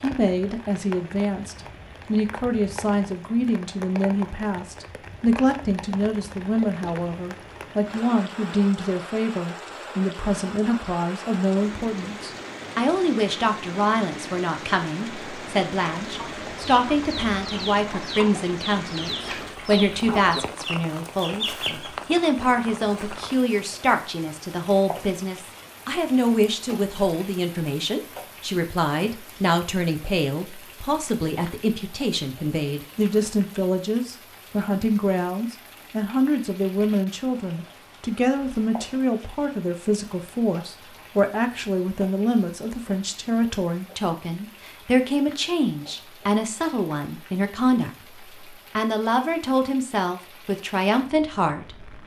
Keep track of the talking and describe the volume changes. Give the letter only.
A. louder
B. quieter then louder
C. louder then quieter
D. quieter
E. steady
E.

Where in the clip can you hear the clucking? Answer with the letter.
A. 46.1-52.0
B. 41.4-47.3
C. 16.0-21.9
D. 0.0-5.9
C.